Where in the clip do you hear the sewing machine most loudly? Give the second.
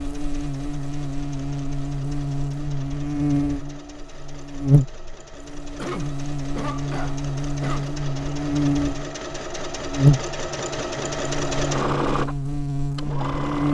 12 s.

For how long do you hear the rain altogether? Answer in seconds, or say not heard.
not heard.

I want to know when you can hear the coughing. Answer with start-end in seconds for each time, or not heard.
5.8-7.8.